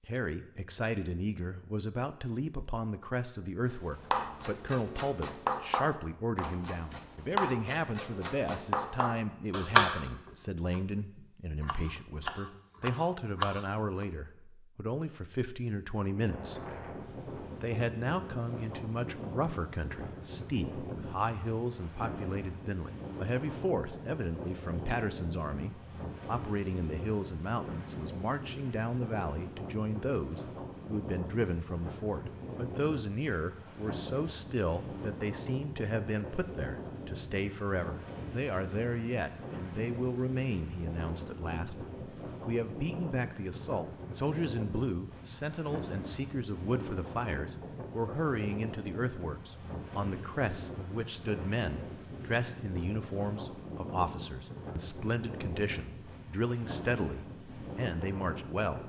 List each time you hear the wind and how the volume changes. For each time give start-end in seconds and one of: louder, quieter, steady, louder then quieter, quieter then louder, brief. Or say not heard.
16.1-58.8 steady.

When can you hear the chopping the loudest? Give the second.
10 s.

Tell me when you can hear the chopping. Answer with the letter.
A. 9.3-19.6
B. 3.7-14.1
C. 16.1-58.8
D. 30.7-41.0
B.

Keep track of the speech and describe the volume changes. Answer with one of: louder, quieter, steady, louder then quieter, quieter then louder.
steady.